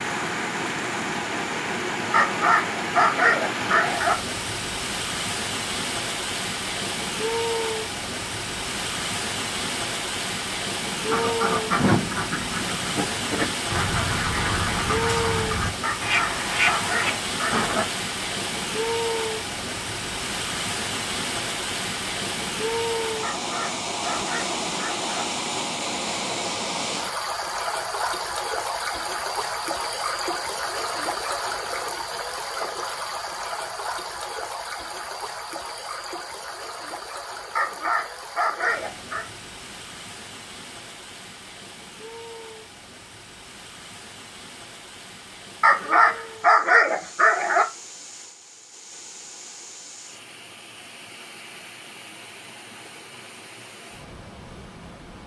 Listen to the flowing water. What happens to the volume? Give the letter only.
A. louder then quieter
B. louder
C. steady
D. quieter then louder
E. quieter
E.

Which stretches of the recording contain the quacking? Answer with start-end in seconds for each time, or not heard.
10.9-17.9.